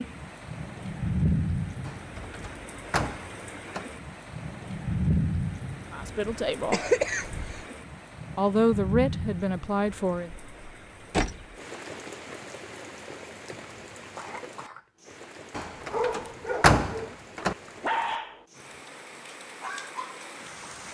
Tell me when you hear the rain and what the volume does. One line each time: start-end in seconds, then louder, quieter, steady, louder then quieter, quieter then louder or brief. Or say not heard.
0.0-20.8 quieter.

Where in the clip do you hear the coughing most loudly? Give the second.
7 s.